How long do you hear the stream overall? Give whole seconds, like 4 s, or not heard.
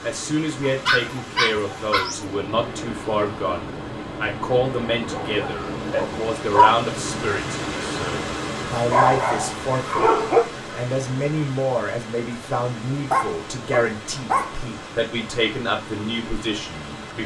17 s.